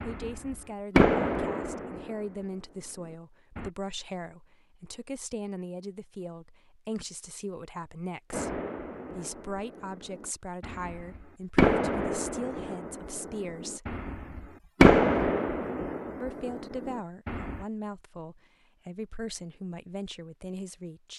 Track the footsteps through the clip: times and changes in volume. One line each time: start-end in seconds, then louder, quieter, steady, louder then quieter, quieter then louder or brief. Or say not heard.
not heard.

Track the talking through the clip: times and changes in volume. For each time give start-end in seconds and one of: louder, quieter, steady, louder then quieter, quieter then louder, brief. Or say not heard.
0.1-13.9 steady
16.2-21.1 steady.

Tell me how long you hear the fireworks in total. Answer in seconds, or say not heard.
13 s.